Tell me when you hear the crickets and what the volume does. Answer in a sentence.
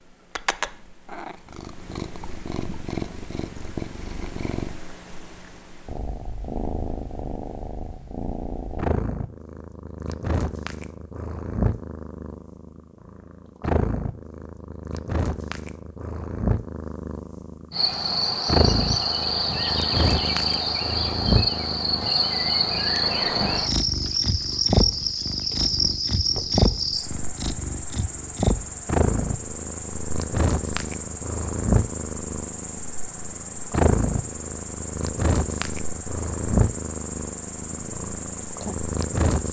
You can hear the crickets from 17.7 to 39.4 s, getting quieter.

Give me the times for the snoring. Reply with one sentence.
The snoring can't be heard in this clip.